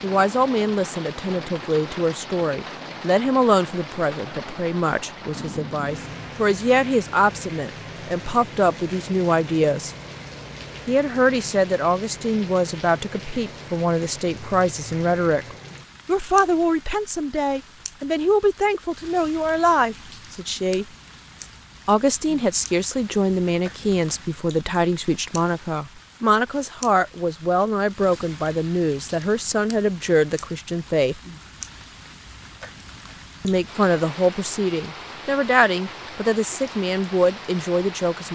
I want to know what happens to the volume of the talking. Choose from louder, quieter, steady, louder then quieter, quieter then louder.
steady.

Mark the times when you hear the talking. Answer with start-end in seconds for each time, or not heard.
0.0-9.9, 10.8-20.9, 21.9-31.1, 33.4-38.2.